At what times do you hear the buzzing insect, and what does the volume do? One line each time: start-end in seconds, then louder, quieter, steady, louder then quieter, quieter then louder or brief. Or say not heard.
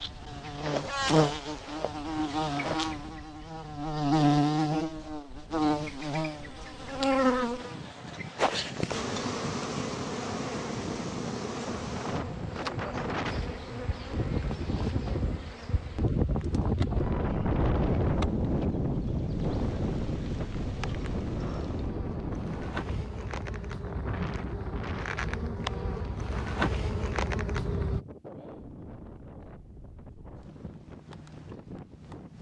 0.0-28.0 quieter then louder.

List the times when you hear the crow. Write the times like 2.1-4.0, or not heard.
not heard.